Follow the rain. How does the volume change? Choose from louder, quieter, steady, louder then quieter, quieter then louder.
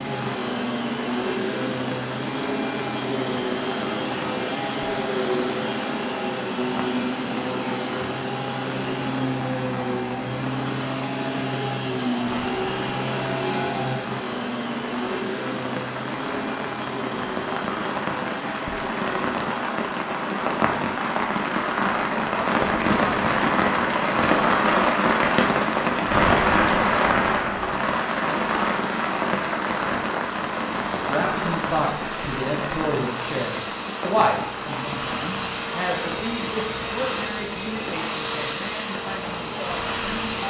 louder then quieter.